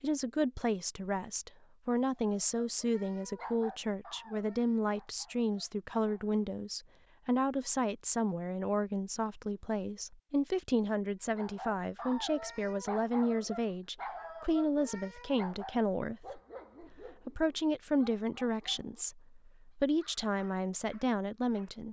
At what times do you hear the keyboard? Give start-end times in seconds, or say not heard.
not heard.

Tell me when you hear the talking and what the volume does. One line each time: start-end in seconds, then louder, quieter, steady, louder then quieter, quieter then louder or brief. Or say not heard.
0.0-21.8 steady.